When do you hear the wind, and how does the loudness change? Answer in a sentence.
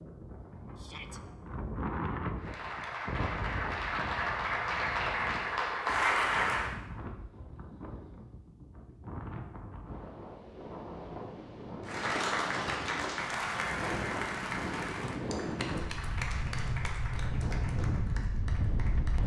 You can hear the wind from 0.0 to 19.2 s, getting quieter then louder.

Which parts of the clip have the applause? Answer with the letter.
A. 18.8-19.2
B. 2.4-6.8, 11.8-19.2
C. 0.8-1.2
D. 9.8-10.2
B.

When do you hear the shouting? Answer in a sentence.
The shouting can be heard from 0.8 to 1.2 s.